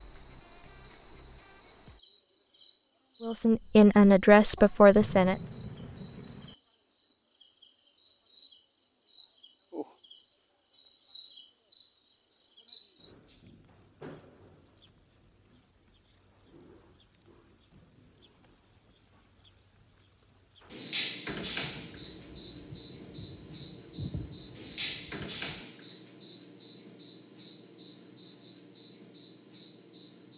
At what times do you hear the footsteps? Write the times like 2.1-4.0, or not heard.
not heard.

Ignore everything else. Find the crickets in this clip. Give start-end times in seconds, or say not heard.
0.0-30.3.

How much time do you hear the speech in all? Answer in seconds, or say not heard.
2 s.